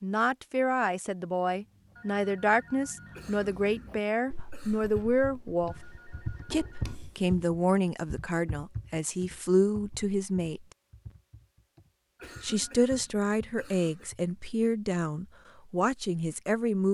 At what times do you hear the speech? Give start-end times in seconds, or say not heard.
0.0-5.8, 6.5-10.7, 12.4-16.9.